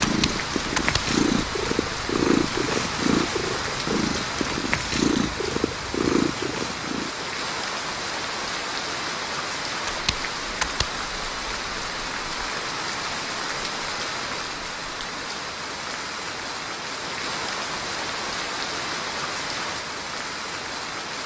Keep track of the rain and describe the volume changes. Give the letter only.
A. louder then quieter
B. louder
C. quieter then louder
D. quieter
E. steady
E.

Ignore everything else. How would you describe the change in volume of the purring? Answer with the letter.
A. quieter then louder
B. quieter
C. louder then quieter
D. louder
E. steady
E.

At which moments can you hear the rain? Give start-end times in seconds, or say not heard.
0.0-21.2.